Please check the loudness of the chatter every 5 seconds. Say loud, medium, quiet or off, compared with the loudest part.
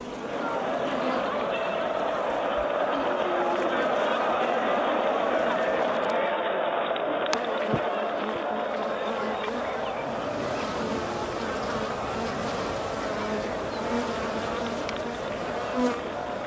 loud, loud, medium, medium.